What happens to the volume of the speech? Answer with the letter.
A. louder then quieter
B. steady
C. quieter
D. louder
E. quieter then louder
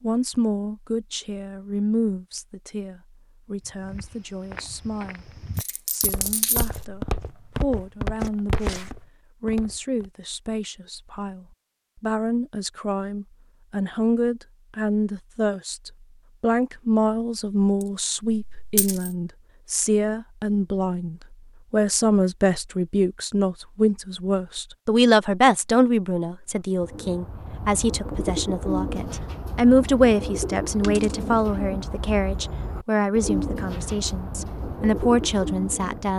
D.